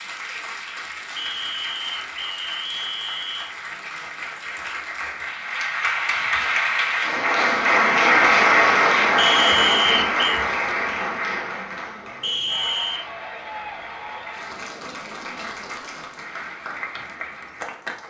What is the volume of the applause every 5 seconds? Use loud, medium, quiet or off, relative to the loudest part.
quiet, loud, medium, quiet.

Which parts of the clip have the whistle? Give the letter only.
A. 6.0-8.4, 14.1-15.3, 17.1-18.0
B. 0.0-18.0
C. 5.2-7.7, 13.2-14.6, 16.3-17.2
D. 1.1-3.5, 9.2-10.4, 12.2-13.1
D.